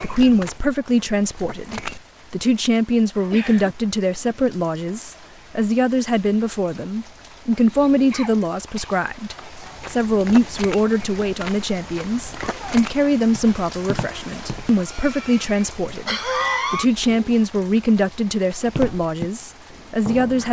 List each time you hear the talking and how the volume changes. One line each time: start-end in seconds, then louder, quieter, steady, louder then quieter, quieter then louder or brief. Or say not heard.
0.0-20.4 steady.